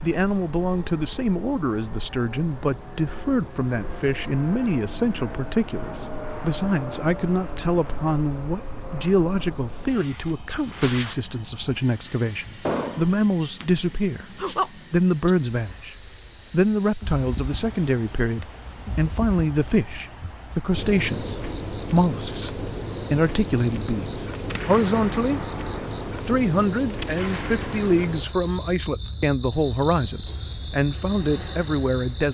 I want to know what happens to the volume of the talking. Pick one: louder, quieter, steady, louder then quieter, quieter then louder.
steady.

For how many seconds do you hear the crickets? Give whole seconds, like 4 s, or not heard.
32 s.